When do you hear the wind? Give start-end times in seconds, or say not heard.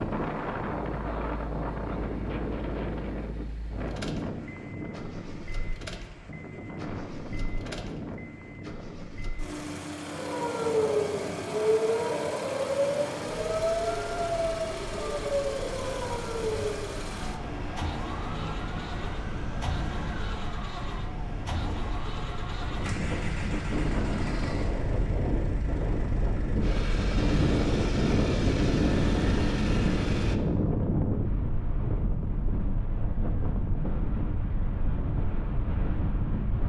0.0-36.6.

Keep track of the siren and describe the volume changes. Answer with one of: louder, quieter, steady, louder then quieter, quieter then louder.
quieter.